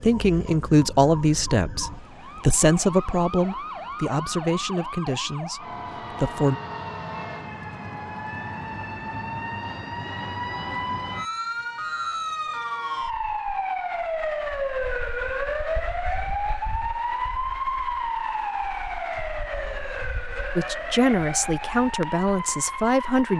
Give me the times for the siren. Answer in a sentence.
The siren can be heard from 0.0 to 23.3 s.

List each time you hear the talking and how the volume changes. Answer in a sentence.
The talking can be heard from 0.0 to 6.5 s, getting quieter; and briefly from 20.6 to 23.3 s.